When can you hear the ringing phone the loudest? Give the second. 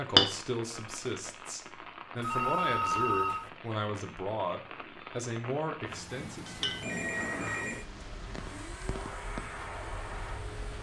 3 s.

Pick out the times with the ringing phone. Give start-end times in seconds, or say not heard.
2.2-3.5, 6.8-7.8.